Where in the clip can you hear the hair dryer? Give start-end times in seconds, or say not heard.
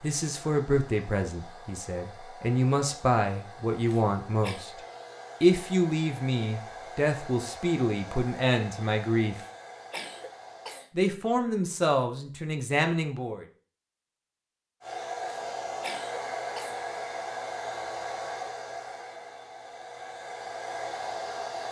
0.0-10.8, 14.8-21.6.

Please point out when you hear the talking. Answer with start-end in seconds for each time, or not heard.
0.0-4.7, 5.4-9.3, 10.9-13.4.